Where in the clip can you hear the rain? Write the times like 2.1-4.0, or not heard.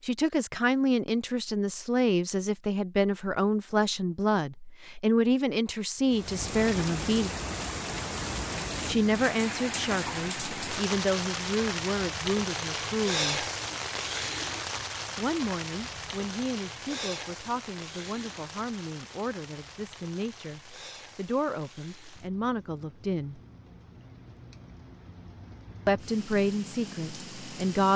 6.0-27.9.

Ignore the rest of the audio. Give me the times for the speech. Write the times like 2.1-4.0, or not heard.
0.0-7.3, 8.8-13.4, 15.2-23.4, 25.9-27.9.